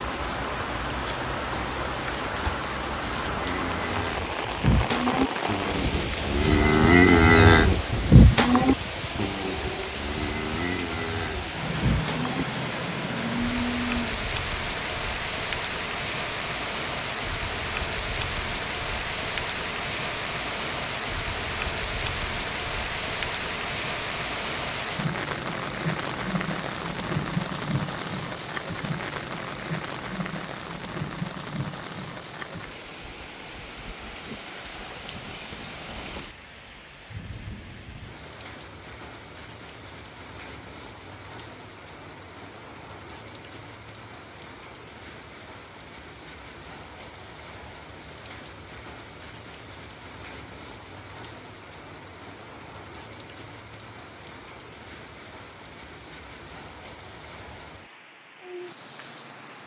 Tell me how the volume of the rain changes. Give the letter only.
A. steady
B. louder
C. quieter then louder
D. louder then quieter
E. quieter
E.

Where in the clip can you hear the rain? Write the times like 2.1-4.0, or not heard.
0.0-59.6.